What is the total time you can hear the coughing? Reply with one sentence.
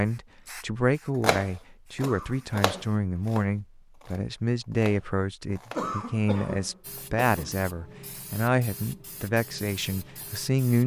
The coughing can be heard for 3 seconds in total.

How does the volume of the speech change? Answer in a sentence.
The loudness of the speech stays about the same.